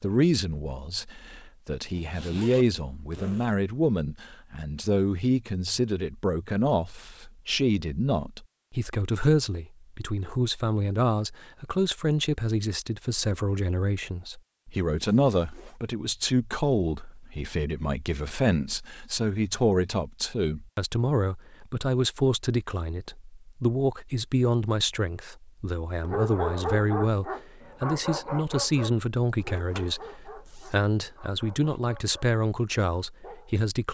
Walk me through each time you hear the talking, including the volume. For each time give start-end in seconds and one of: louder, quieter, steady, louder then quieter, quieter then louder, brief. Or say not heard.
0.0-33.9 steady.